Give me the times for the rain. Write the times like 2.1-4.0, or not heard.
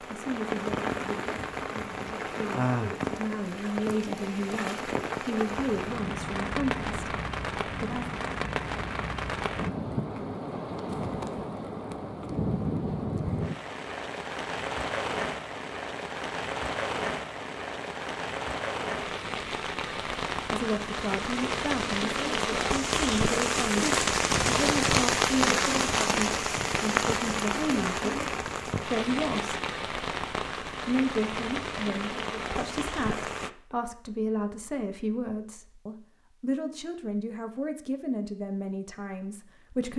0.0-33.5.